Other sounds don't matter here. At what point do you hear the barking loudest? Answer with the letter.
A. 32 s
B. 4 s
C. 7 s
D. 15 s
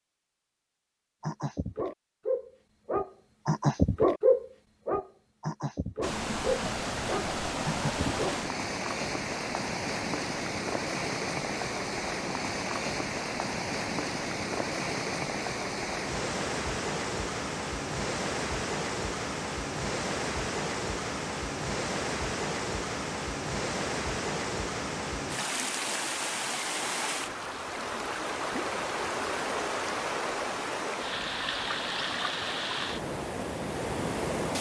B.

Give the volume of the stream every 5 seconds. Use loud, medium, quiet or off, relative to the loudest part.
off, loud, loud, loud, loud, loud, loud.